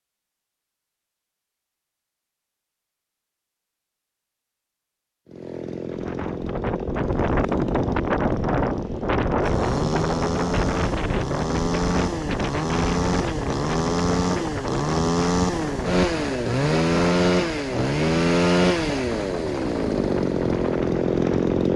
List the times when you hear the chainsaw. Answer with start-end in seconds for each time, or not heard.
5.2-21.7.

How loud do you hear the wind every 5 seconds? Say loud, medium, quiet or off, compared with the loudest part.
off, loud, loud, medium, medium.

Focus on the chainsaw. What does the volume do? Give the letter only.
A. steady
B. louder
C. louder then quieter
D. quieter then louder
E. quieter
B.